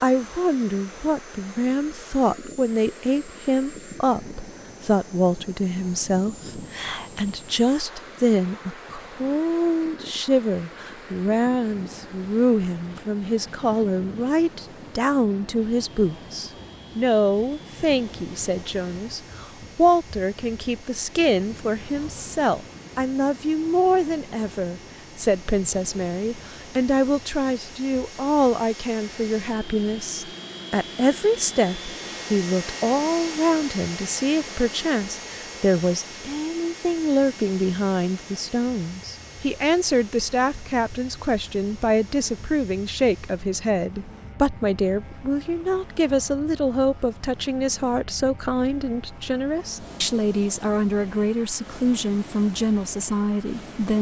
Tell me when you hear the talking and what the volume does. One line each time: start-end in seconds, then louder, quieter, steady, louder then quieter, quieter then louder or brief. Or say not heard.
0.0-53.9 steady.